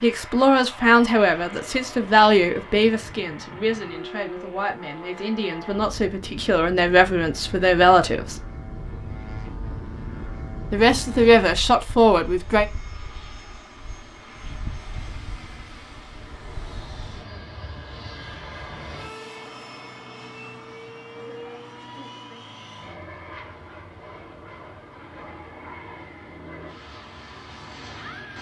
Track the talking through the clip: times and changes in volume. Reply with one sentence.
You can hear the talking from 0.0 to 8.4 s, getting quieter then louder; and briefly from 10.7 to 12.7 s.